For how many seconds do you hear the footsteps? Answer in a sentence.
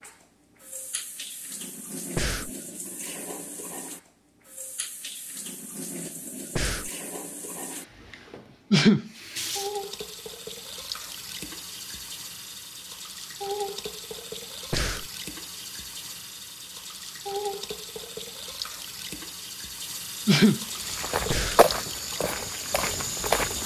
The footsteps can be heard for 3 seconds in total.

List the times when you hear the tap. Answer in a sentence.
The tap can be heard from 0.0 to 23.6 s.